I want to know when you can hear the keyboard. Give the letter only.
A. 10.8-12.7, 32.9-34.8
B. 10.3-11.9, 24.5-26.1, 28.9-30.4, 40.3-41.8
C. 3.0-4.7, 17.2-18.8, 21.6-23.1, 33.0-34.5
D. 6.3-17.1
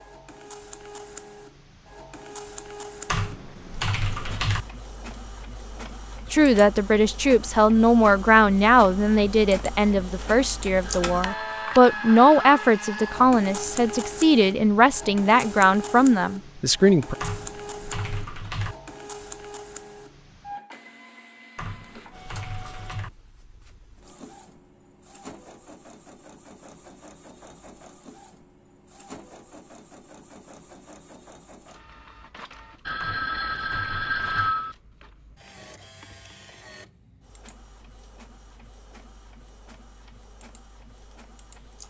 C.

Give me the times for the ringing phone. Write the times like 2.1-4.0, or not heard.
10.8-12.7, 32.9-34.8.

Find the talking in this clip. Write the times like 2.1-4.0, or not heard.
6.3-17.1.